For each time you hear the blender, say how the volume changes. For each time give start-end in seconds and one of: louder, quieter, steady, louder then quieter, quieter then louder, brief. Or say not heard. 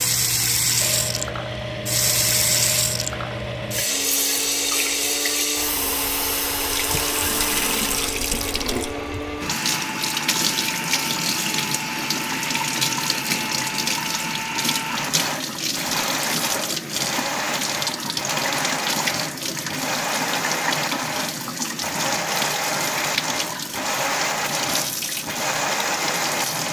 0.0-26.6 louder.